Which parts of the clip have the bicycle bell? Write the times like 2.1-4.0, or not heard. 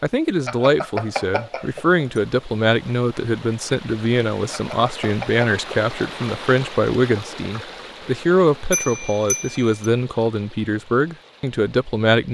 0.5-2.0, 4.5-5.5, 8.7-9.9.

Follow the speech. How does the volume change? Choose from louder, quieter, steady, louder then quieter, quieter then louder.
steady.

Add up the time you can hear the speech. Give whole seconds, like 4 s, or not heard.
12 s.